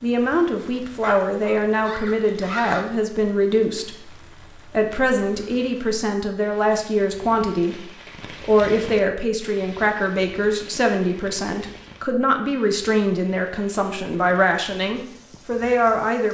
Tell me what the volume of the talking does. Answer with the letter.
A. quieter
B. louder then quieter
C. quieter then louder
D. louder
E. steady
E.